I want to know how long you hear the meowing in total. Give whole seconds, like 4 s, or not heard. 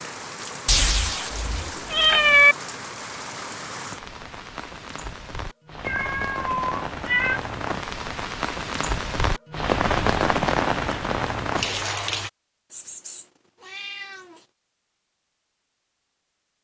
5 s.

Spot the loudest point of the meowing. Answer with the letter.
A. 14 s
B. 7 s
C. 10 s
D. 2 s
D.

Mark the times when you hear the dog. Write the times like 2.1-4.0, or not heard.
not heard.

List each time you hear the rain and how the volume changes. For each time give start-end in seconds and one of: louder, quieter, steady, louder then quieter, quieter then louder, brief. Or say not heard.
0.0-12.3 louder.